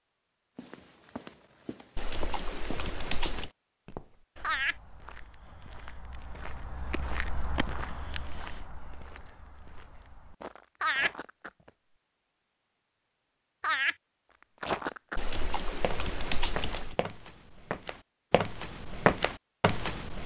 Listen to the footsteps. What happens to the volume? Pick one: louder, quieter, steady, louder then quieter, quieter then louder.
louder.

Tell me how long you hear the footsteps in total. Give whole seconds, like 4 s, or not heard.
17 s.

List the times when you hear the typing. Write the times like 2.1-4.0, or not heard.
1.9-3.5, 15.2-16.9.